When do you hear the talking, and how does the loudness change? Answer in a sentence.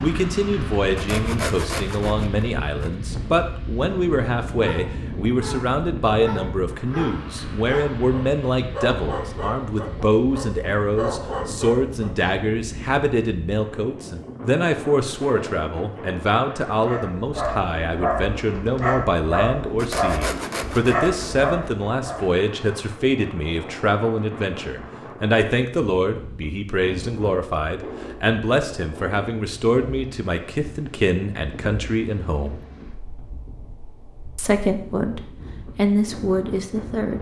You can hear the talking from 0.0 to 32.6 s, at a steady volume; and briefly from 34.4 to 37.1 s.